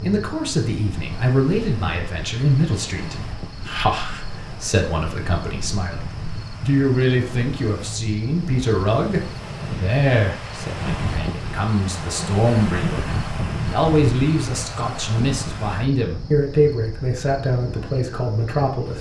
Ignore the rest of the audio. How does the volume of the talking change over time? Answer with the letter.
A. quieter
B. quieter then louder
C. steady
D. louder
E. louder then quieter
C.